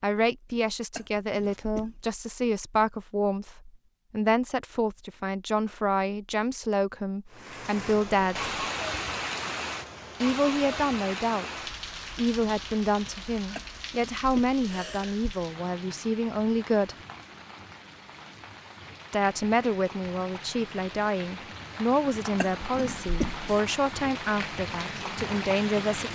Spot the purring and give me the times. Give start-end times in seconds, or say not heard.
not heard.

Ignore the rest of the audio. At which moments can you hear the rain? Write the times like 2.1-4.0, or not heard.
7.3-26.1.